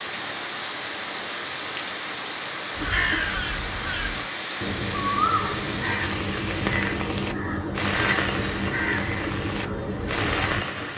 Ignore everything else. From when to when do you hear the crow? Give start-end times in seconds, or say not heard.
2.8-10.9.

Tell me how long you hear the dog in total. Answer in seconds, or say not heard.
not heard.